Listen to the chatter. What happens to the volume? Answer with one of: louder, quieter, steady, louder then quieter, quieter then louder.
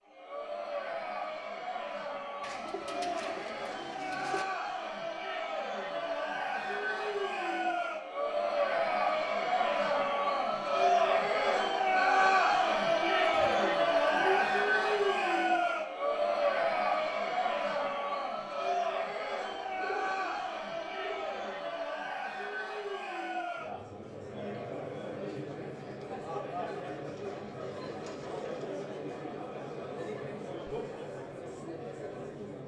louder then quieter.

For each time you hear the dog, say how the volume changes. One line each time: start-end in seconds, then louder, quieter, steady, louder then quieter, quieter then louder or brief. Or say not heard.
not heard.